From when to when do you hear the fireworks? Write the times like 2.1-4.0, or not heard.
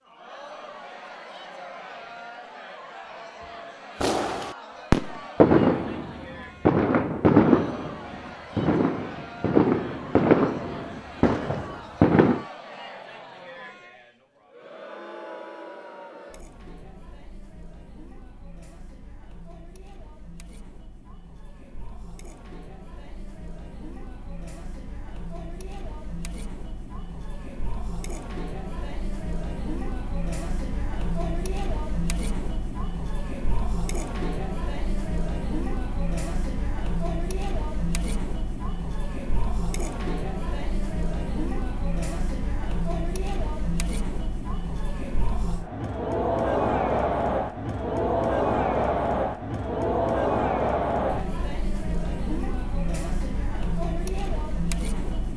4.0-12.4.